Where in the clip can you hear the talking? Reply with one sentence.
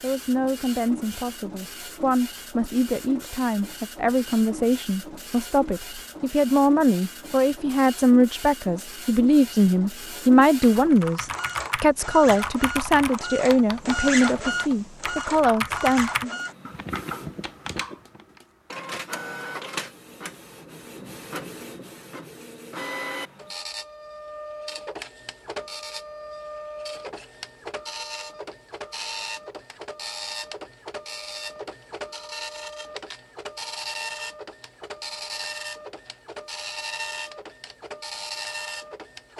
The talking can be heard from 0.0 to 16.4 s.